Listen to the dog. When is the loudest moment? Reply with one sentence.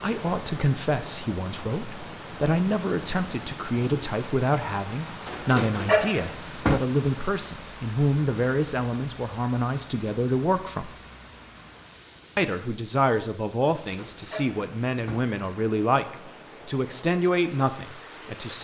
The volume of the dog peaks at 6 seconds.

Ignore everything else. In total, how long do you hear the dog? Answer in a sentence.
The dog can be heard for 3 seconds in total.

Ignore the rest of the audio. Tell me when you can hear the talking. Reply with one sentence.
The talking can be heard from 0.0 to 10.9 s and from 12.3 to 18.6 s.